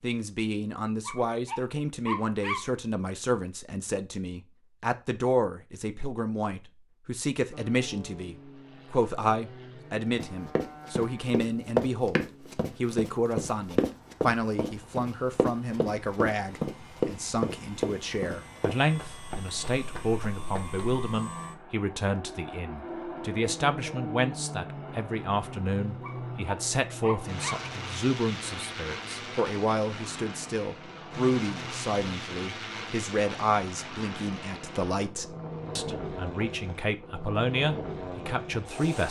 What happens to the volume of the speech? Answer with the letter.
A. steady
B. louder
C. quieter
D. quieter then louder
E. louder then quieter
A.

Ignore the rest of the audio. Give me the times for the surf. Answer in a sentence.
The surf can't be heard in this clip.